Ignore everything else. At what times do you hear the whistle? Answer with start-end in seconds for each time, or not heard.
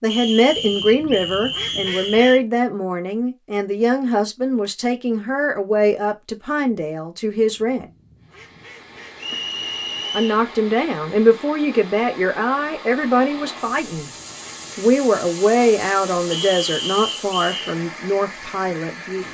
0.1-2.4, 9.2-10.4, 16.3-17.6.